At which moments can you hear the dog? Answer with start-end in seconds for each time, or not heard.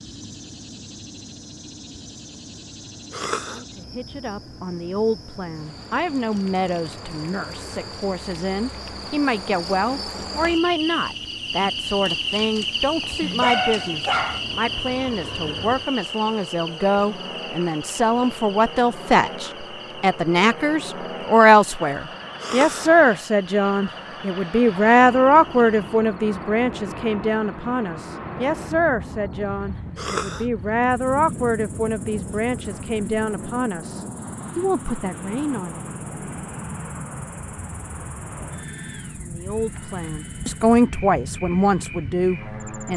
12.1-14.4.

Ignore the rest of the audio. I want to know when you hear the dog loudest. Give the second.
14 s.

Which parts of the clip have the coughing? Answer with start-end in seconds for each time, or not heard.
3.1-3.6, 22.4-22.9, 29.9-30.5.